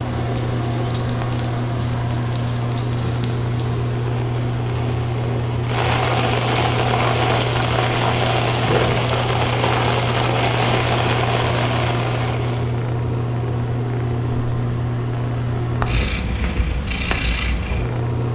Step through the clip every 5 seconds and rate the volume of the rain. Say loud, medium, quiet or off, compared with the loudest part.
quiet, loud, loud, off.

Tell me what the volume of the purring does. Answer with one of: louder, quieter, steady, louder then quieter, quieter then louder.
steady.